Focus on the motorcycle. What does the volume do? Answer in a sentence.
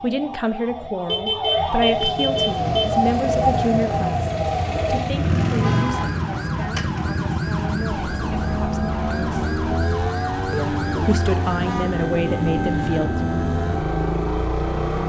The loudness of the motorcycle stays about the same.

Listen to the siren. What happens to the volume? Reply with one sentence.
The loudness of the siren goes down.